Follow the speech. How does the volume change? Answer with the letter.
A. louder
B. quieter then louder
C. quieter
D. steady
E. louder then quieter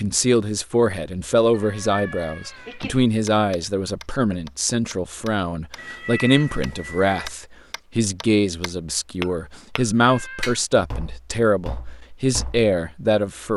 D.